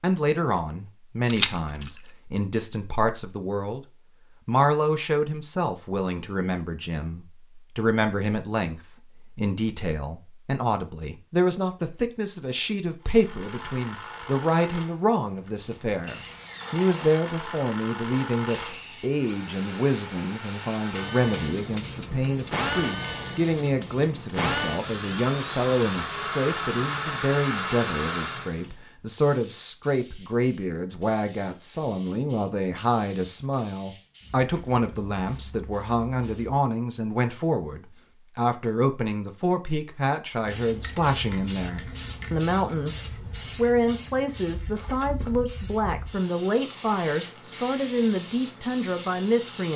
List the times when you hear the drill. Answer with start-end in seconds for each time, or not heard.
13.0-28.6.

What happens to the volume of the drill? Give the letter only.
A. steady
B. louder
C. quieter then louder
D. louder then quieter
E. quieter
B.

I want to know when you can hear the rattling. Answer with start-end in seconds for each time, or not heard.
1.2-1.9.